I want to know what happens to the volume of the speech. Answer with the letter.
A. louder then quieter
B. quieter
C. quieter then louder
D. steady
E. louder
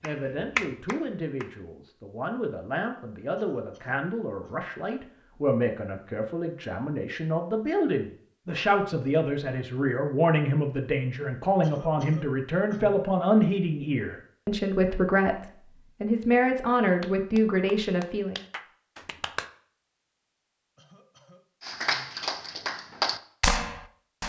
E.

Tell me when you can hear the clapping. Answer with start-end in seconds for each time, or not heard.
0.0-1.6, 17.0-19.4, 21.6-24.2.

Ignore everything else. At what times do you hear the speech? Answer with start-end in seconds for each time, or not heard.
0.0-18.4.